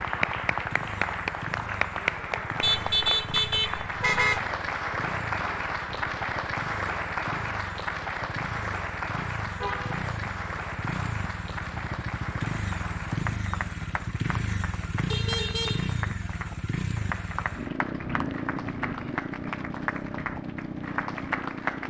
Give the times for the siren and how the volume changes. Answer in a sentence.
The siren can't be heard in this clip.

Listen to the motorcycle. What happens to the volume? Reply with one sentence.
The volume of the motorcycle goes up.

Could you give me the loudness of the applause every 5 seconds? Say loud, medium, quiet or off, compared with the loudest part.
loud, loud, medium, medium, loud.